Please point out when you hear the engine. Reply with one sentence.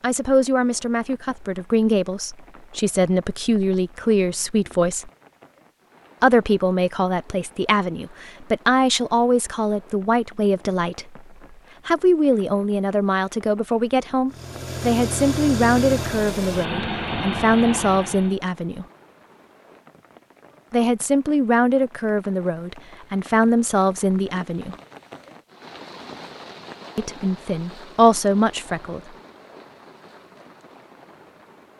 You can hear the engine from 14.3 to 18.4 s.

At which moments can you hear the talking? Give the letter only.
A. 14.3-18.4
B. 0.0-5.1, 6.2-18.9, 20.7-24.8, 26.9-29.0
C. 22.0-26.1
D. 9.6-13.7
B.